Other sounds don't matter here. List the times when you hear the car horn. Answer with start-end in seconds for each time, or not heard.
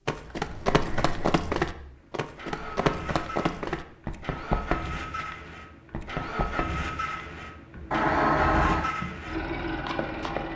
0.7-1.4, 7.9-8.9.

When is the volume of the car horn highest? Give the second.
8 s.